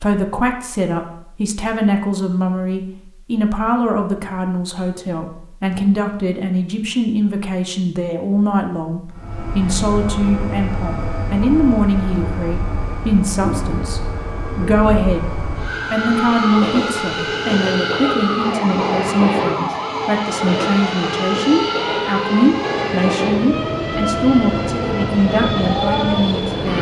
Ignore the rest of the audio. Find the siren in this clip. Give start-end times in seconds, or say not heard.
15.6-26.7.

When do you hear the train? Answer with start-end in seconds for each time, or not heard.
9.1-26.7.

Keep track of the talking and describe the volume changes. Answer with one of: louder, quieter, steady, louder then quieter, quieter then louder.
steady.